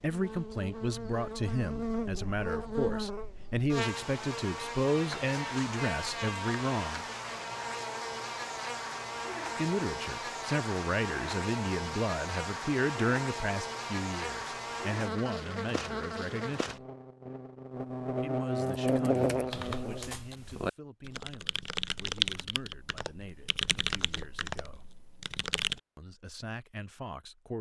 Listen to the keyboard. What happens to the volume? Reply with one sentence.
The volume of the keyboard goes up, then down.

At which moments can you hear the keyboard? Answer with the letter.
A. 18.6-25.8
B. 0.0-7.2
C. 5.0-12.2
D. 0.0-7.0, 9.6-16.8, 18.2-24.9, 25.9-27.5
A.